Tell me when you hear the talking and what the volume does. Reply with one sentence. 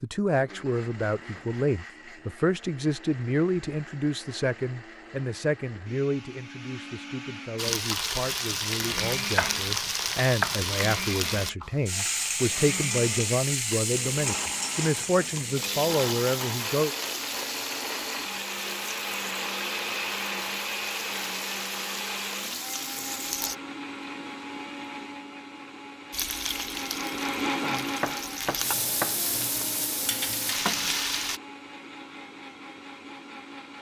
The talking can be heard from 0.0 to 16.9 s, getting quieter then louder.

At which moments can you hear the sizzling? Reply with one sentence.
The sizzling can be heard from 7.5 to 23.6 s and from 26.1 to 31.4 s.